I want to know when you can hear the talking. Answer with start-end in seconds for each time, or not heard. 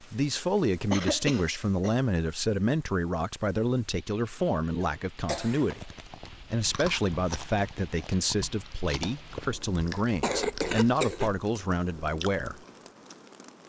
0.0-12.6.